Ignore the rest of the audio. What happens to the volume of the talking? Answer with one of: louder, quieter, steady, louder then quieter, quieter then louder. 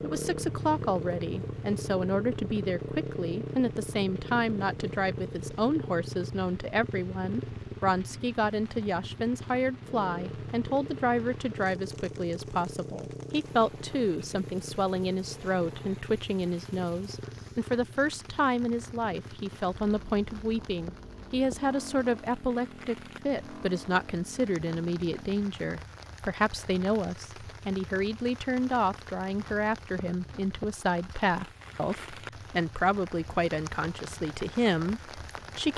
steady.